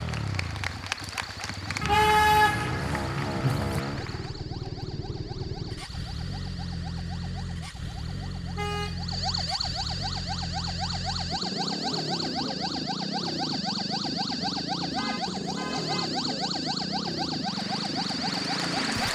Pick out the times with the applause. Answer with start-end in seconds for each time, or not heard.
0.0-4.4, 17.4-19.1.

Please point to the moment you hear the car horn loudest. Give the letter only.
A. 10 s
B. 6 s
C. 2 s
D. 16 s
C.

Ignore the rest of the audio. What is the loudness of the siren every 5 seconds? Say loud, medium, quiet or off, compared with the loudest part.
quiet, medium, loud, loud.